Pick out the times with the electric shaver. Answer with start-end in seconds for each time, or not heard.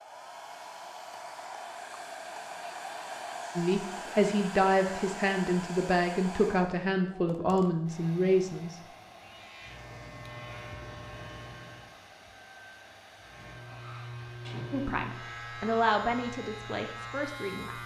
9.2-12.0, 13.2-17.8.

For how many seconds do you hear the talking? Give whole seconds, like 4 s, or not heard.
8 s.